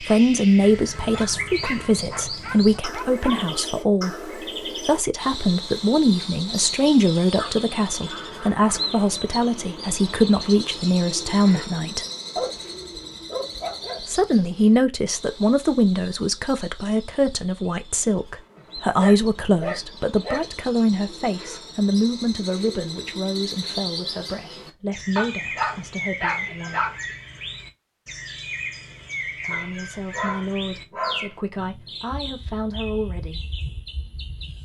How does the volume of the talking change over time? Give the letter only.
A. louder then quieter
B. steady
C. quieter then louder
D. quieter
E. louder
D.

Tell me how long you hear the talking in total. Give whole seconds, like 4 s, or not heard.
29 s.